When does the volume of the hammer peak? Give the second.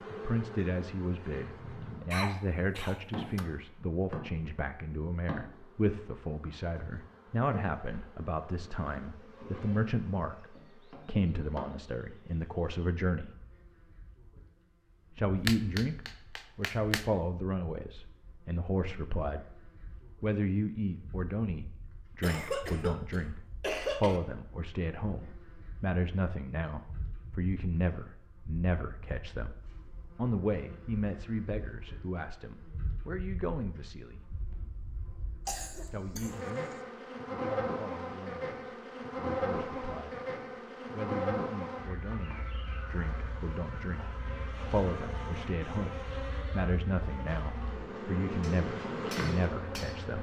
16 s.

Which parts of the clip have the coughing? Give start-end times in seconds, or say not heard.
2.1-3.5, 22.2-24.2, 35.5-36.8.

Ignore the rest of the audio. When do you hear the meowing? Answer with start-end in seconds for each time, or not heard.
not heard.